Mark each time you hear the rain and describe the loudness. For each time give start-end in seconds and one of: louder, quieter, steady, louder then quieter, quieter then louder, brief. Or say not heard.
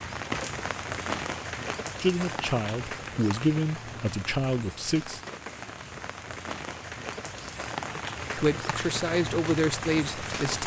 0.0-10.6 quieter then louder.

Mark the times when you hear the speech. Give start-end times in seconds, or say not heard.
2.0-5.2, 8.3-10.6.